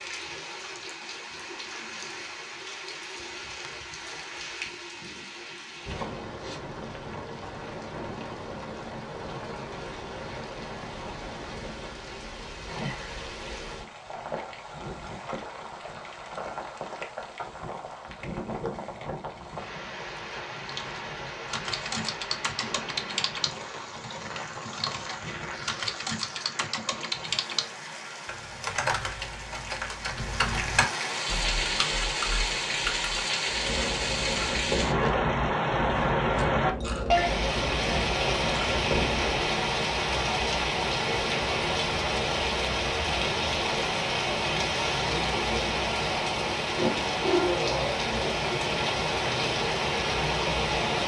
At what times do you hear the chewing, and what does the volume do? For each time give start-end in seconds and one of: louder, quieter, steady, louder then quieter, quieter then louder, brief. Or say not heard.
33.5-39.5 steady.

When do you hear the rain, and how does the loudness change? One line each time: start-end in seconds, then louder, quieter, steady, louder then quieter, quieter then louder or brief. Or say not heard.
0.0-51.0 louder.